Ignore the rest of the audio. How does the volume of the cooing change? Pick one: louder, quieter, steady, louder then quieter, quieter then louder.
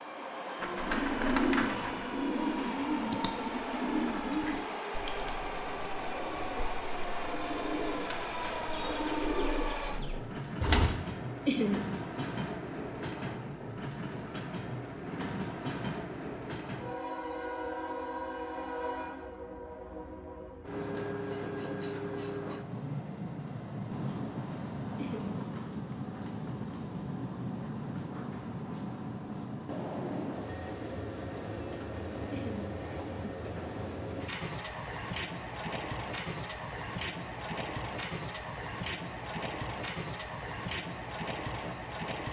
quieter then louder.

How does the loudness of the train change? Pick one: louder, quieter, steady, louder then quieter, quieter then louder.
steady.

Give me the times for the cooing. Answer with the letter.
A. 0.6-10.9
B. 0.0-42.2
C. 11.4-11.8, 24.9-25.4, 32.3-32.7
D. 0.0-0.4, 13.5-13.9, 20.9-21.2
A.